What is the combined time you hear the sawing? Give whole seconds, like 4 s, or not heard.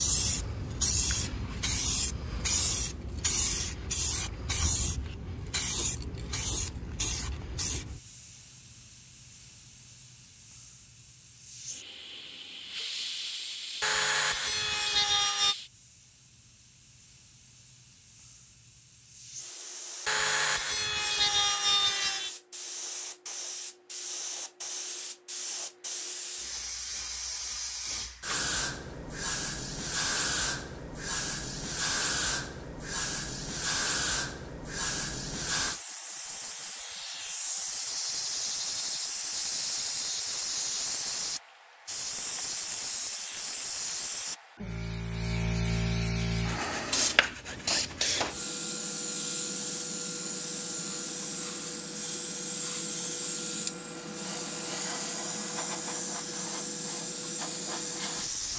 6 s.